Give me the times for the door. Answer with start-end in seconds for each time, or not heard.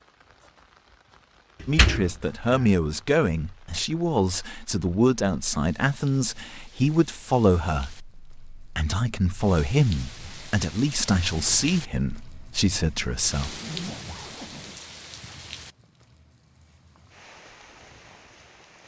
1.6-2.7.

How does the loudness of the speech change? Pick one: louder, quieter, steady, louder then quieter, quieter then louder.
steady.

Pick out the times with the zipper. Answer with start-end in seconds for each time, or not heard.
13.4-14.8.